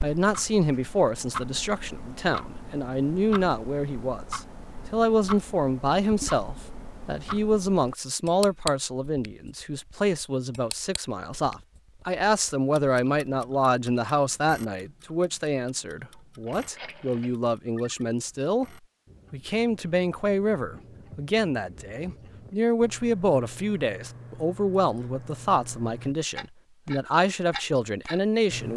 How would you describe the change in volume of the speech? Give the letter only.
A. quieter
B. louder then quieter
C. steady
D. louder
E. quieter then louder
C.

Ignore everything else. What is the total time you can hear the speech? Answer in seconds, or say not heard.
28 s.